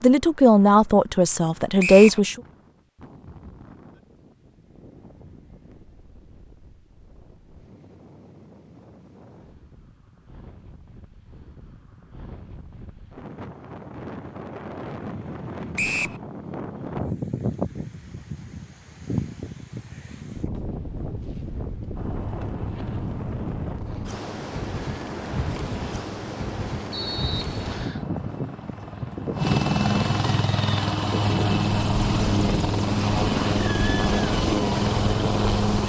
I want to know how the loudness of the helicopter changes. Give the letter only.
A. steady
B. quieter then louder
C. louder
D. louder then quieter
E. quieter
C.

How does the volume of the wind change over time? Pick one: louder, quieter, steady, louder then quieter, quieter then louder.
louder.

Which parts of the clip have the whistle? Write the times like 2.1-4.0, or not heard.
1.8-2.2, 15.8-16.2, 26.9-28.0.